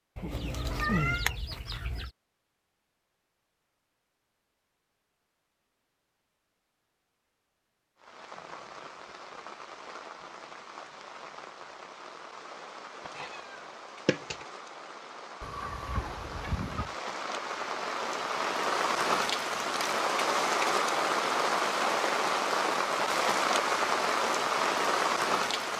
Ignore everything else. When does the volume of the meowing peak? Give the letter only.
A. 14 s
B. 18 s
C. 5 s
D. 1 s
D.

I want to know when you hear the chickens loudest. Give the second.
1 s.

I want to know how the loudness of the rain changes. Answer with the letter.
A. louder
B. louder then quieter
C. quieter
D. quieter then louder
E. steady
A.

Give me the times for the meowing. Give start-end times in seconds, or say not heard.
0.3-1.3, 13.0-14.4.